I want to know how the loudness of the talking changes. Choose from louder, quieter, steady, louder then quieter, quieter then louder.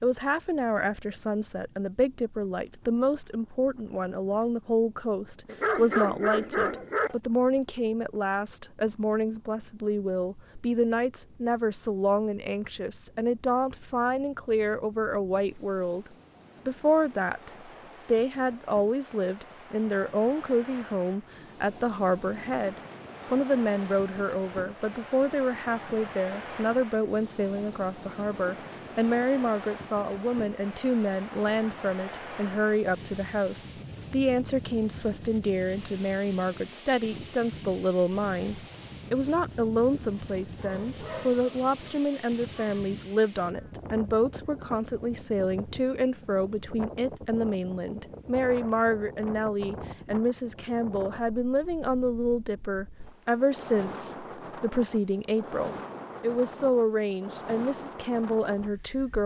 steady.